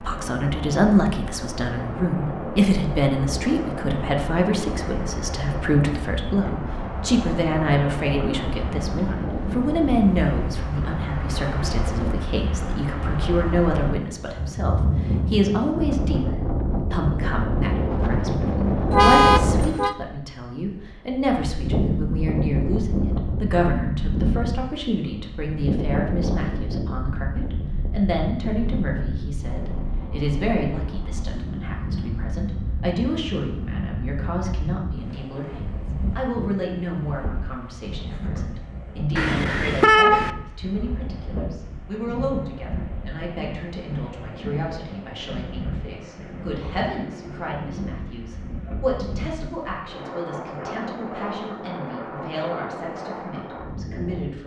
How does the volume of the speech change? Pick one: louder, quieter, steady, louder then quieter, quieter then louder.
quieter.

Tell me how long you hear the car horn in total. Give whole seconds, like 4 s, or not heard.
2 s.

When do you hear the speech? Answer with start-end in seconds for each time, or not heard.
0.0-54.4.